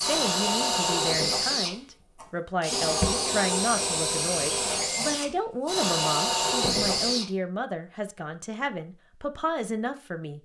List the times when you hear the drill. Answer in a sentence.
The drill can be heard from 0.0 to 7.2 s.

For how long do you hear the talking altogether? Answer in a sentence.
The talking can be heard for 10 seconds in total.